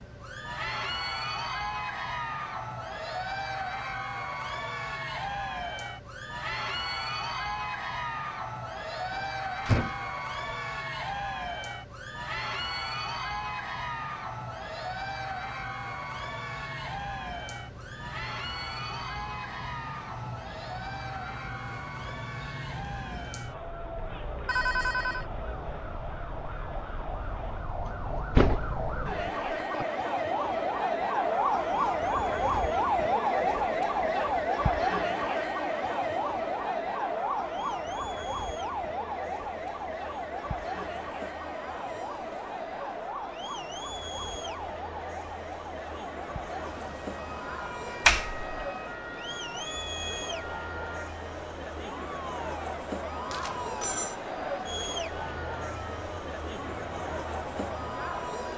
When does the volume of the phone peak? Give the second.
25 s.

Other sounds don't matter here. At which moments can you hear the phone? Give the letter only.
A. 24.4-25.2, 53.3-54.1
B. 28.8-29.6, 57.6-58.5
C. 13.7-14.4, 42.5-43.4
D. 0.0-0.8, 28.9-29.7
A.